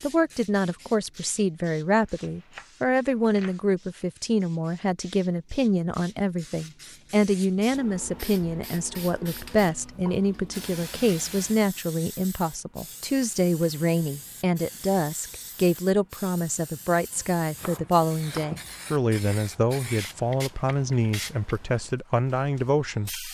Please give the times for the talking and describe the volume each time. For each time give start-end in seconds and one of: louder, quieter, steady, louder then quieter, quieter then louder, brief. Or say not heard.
0.0-23.2 steady.